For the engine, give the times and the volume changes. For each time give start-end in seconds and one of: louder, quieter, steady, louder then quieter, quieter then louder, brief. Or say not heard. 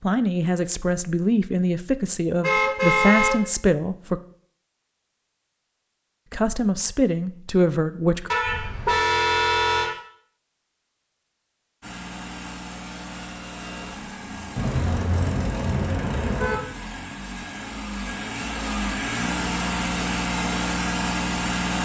11.8-21.7 louder.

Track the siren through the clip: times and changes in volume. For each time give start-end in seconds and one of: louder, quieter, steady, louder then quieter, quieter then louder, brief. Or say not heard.
not heard.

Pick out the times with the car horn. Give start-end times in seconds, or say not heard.
2.4-3.4, 8.3-9.9, 14.6-16.6.